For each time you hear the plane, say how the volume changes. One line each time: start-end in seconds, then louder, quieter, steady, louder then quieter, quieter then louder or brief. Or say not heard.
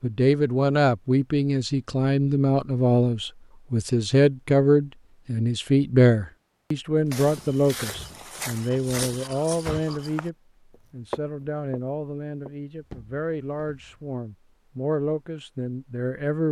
not heard.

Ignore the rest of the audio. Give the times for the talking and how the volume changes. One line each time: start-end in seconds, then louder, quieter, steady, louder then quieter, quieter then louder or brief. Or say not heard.
0.0-16.4 quieter.